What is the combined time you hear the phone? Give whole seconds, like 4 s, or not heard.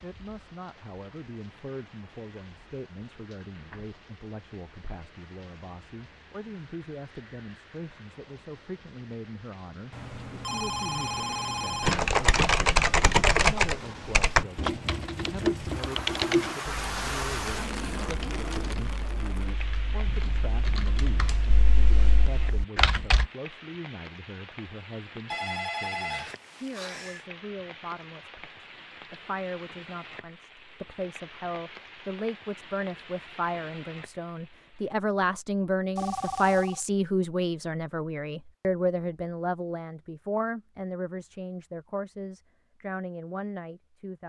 5 s.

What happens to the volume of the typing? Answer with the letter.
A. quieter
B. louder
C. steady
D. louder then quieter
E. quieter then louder
E.